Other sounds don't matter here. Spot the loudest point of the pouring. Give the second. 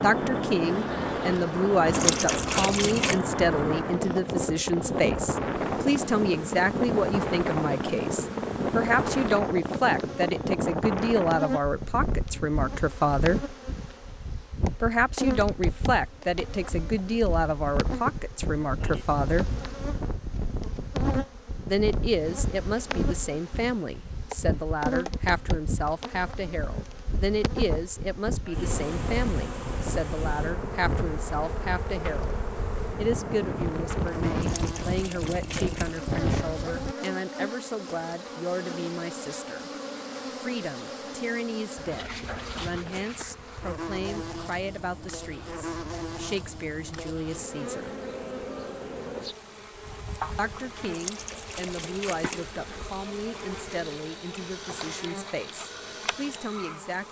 2 s.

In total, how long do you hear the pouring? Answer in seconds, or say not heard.
5 s.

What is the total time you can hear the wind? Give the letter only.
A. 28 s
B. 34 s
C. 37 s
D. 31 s
C.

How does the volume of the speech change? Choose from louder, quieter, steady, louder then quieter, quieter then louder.
quieter.